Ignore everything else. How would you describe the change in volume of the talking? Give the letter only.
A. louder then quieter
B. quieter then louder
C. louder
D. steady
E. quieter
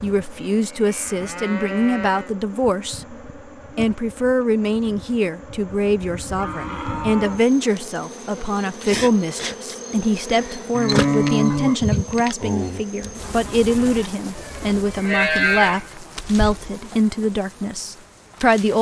D.